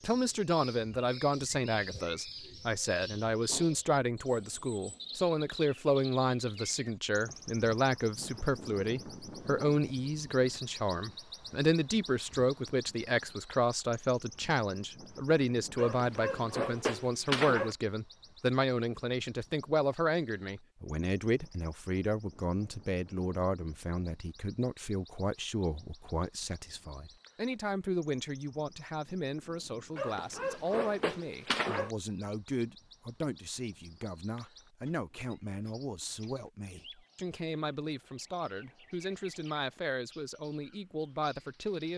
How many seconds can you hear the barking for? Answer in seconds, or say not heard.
4 s.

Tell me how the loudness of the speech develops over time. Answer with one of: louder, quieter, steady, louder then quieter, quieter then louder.
quieter.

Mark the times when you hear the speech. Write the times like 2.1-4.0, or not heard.
0.0-41.9.